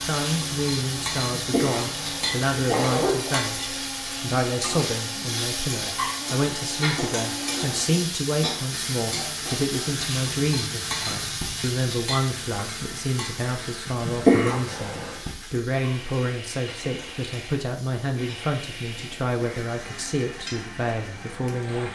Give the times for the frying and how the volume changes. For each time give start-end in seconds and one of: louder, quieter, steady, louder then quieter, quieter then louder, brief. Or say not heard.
0.0-21.9 quieter.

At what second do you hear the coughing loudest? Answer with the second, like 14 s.
14 s.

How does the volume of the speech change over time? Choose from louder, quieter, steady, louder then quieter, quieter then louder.
steady.